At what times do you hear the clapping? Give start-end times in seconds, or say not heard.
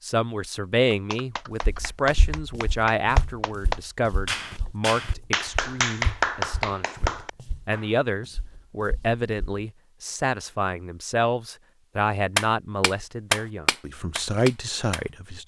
0.9-7.8, 12.3-15.1.